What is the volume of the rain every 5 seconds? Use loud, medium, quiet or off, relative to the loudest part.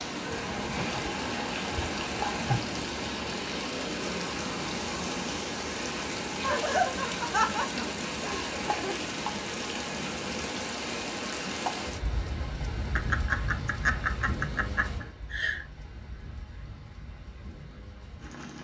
loud, loud, loud, quiet.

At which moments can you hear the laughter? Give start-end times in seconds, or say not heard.
0.3-2.7, 6.4-9.0, 12.9-15.7.